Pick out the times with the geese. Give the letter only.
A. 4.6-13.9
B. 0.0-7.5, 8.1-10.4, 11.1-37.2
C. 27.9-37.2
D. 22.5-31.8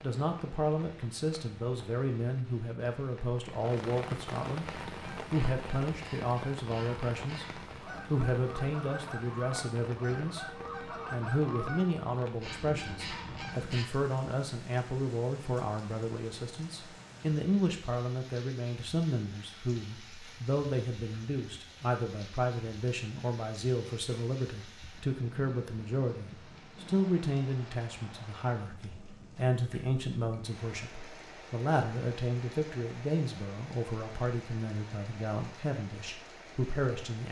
A.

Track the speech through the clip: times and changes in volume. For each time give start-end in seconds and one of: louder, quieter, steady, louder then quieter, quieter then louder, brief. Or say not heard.
0.0-7.5 steady
8.1-10.4 brief
11.1-37.2 steady.